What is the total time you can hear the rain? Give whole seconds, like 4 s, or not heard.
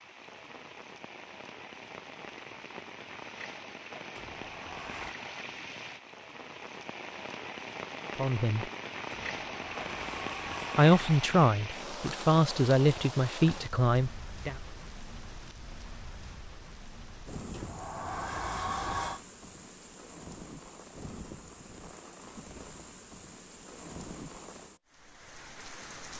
26 s.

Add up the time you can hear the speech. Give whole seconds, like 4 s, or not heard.
4 s.